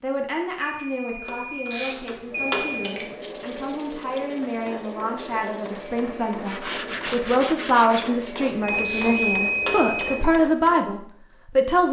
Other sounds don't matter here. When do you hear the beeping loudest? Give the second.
9 s.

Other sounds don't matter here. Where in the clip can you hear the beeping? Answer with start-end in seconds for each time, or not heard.
0.6-3.0, 8.6-10.2.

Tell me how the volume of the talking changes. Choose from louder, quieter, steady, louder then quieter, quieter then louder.
louder.